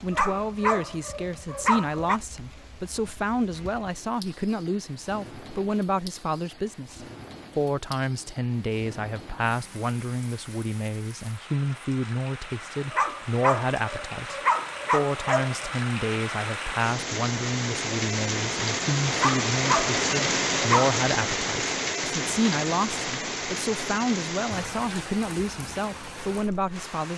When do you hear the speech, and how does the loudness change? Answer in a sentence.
The speech can be heard from 0.0 to 27.1 s, at a steady volume.